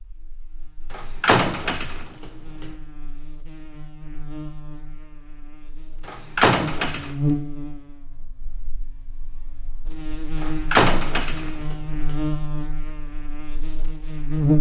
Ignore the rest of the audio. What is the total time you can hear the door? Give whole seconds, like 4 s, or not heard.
4 s.